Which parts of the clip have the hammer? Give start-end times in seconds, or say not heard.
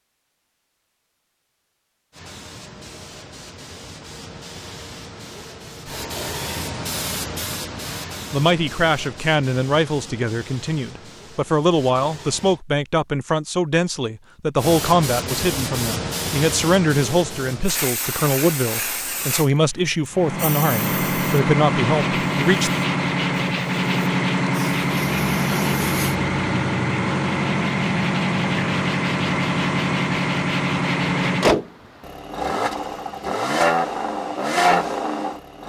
not heard.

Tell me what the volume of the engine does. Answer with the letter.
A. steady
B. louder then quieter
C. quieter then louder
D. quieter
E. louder
A.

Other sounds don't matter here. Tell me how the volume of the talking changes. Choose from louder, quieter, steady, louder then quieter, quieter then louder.
steady.